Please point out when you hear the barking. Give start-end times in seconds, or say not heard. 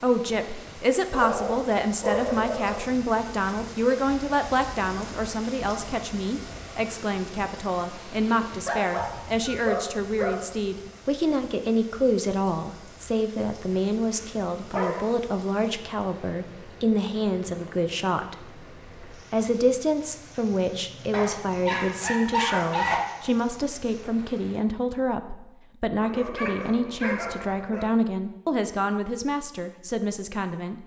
1.1-2.9, 8.7-10.4, 14.1-15.1, 21.1-23.1, 26.0-27.9.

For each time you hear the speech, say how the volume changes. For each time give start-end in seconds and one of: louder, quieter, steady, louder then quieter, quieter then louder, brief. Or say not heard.
0.0-18.4 steady
19.1-30.8 steady.